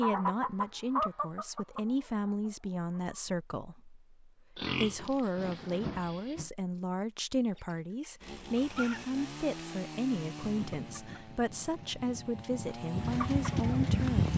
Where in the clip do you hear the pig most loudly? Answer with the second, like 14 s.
5 s.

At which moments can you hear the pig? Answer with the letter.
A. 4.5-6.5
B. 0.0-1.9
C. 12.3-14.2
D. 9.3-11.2
A.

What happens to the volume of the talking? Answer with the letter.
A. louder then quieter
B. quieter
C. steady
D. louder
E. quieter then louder
C.